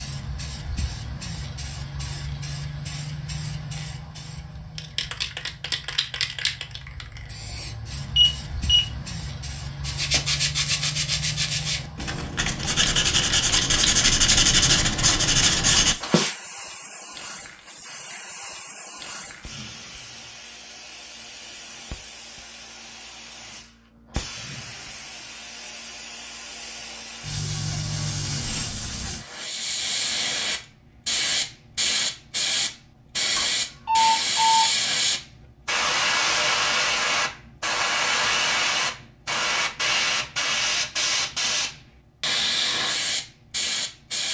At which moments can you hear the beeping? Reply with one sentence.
You can hear the beeping from 8.2 to 8.8 s and from 33.4 to 34.6 s.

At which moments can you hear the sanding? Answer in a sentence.
You can hear the sanding from 9.8 to 16.4 s.